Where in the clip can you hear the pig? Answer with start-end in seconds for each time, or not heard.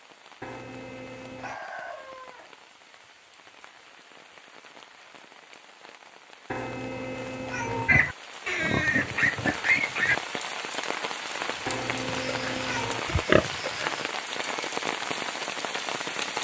7.8-10.2, 12.1-14.1.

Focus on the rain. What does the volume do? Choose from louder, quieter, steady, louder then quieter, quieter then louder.
louder.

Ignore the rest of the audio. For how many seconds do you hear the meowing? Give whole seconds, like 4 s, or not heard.
4 s.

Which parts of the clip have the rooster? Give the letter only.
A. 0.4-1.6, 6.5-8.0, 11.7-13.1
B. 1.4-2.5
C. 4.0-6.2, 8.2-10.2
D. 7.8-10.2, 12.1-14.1
B.